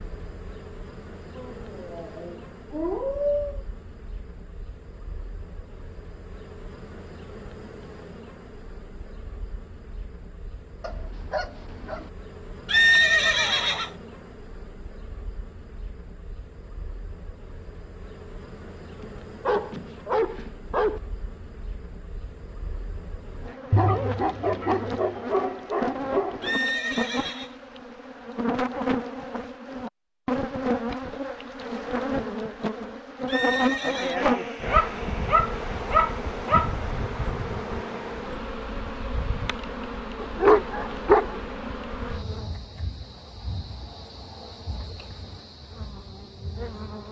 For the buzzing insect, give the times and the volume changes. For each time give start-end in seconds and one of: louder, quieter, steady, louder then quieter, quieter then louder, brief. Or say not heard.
0.0-47.0 louder then quieter.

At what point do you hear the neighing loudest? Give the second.
13 s.